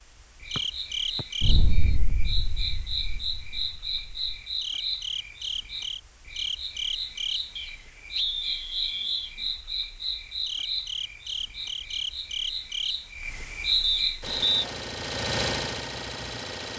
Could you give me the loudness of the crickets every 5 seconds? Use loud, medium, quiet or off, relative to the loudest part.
loud, loud, loud, off.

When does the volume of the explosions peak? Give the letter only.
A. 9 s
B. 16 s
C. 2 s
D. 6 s
C.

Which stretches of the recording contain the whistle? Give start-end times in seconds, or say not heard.
0.6-1.9, 7.5-9.3, 13.8-14.7.